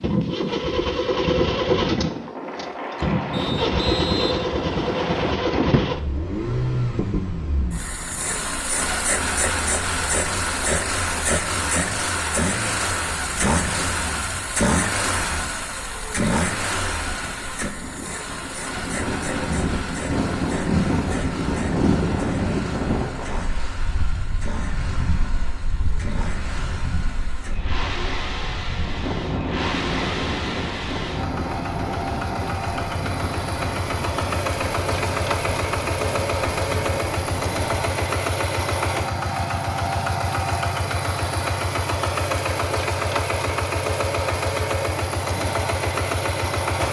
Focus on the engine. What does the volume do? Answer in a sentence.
The loudness of the engine goes down, then up.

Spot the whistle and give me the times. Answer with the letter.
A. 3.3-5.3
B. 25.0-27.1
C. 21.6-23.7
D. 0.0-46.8
A.